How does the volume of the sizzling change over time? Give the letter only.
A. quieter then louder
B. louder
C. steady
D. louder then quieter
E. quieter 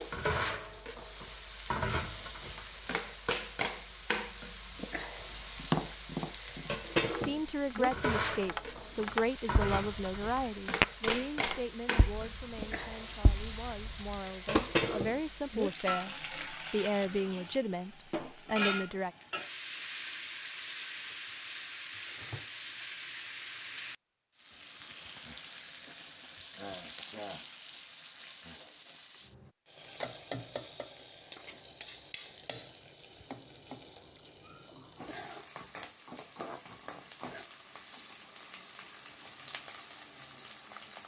E.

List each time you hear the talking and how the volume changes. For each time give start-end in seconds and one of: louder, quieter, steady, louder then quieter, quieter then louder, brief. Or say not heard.
7.1-19.1 quieter then louder.